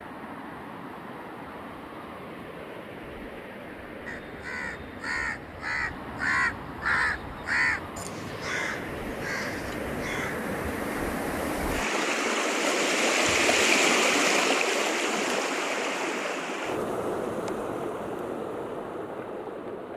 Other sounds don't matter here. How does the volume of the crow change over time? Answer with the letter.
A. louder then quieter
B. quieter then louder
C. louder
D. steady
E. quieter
A.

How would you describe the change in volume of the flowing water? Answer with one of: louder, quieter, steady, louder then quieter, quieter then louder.
louder then quieter.